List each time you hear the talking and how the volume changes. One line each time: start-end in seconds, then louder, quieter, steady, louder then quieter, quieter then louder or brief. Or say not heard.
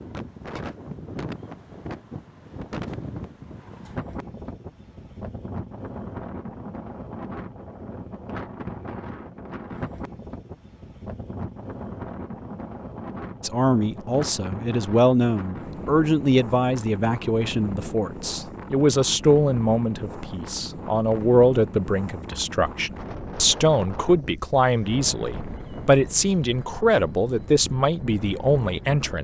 13.4-29.1 steady.